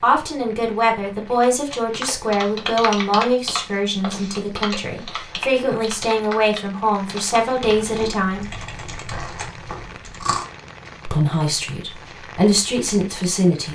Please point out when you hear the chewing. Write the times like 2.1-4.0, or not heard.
7.8-10.4.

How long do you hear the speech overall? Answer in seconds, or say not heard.
11 s.